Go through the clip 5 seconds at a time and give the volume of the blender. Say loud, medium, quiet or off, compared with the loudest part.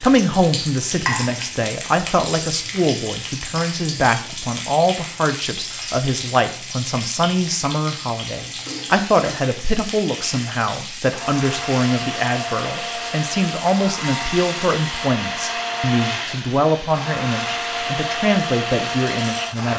off, off, loud, loud.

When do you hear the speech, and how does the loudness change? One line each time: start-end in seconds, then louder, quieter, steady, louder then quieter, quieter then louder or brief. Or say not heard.
0.0-19.7 steady.